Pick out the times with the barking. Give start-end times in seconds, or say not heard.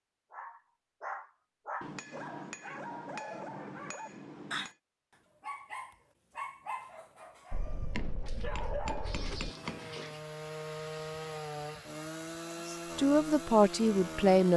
0.3-10.2.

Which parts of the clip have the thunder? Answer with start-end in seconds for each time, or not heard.
7.5-9.5.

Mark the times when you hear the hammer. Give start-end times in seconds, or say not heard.
1.8-4.8, 7.9-9.9.